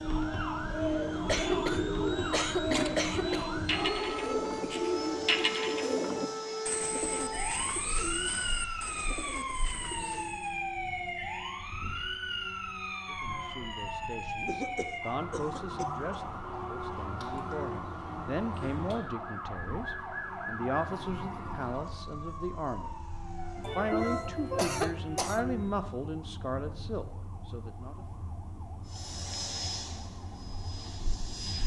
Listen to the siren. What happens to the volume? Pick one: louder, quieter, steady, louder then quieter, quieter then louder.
quieter.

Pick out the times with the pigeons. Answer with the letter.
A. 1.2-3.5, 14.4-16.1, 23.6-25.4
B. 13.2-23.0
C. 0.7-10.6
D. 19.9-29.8
C.